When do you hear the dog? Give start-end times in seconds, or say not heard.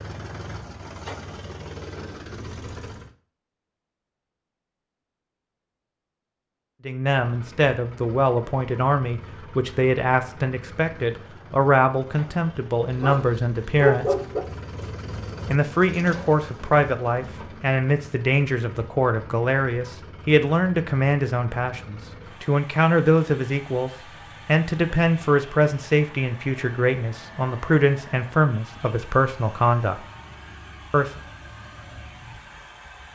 12.9-14.4.